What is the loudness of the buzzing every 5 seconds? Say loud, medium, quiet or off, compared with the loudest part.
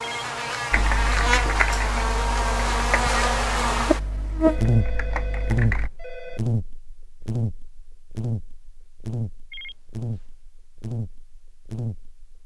loud, medium, medium.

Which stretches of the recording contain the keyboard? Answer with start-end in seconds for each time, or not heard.
0.7-5.9.